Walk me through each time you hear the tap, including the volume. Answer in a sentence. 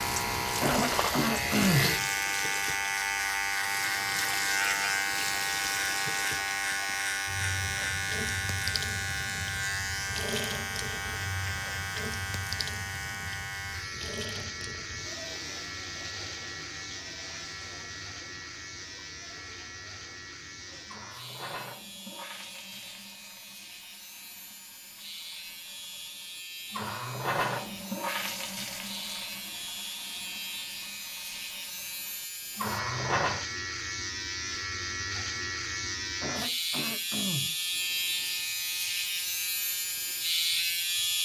The tap can be heard from 0.0 to 33.5 s, getting quieter then louder.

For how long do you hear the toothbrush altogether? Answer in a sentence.
The toothbrush can't be heard in this clip.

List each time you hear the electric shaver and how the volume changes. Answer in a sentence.
You can hear the electric shaver from 0.0 to 41.2 s, getting quieter then louder.